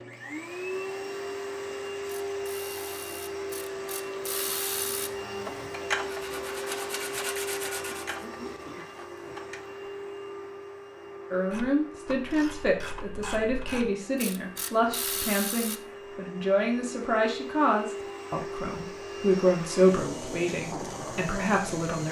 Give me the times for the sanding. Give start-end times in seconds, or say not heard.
4.8-8.2.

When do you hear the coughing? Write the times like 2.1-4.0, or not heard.
7.8-8.9.